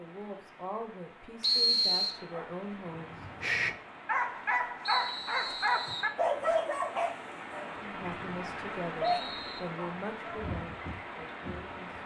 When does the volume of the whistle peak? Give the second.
2 s.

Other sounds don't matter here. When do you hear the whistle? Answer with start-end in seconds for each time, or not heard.
1.4-2.1, 4.8-6.1, 8.0-9.6.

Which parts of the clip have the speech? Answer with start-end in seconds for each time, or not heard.
0.0-3.2, 7.8-12.0.